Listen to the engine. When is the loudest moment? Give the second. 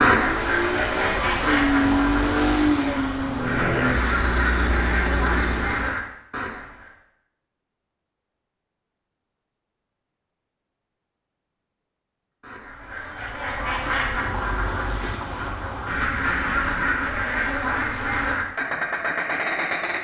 2 s.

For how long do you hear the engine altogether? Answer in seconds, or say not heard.
6 s.